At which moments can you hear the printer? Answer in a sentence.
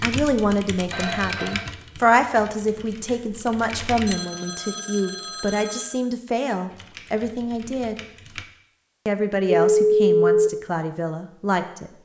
You can't hear the printer here.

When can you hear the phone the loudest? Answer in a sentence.
The loudest moment of the phone is at 10 seconds.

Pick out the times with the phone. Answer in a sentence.
The phone can be heard from 0.9 to 1.7 s, from 4.0 to 6.0 s and from 9.7 to 10.5 s.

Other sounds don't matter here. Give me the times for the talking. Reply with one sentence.
You can hear the talking from 0.0 to 8.0 s and from 9.1 to 11.9 s.